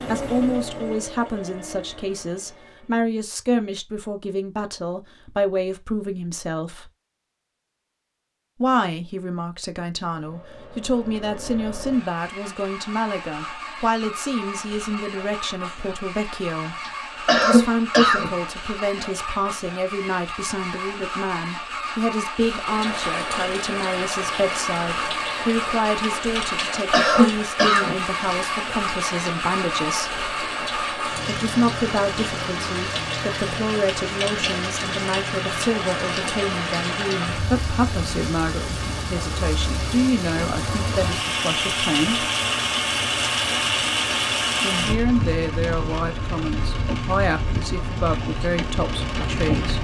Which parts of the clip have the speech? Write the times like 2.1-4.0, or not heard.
0.1-6.9, 8.6-16.8, 17.4-30.2, 31.2-42.2, 44.6-49.7.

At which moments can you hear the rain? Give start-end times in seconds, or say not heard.
22.5-49.7.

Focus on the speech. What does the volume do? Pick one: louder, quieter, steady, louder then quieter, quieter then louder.
steady.